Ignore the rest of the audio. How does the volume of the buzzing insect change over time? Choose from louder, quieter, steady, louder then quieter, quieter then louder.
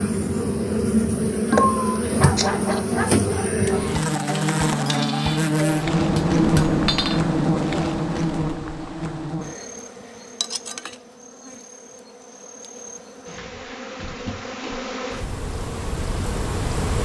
quieter then louder.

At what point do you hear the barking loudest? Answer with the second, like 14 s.
2 s.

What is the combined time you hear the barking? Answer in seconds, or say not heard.
2 s.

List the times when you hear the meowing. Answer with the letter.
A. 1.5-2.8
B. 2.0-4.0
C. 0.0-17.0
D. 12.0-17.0
A.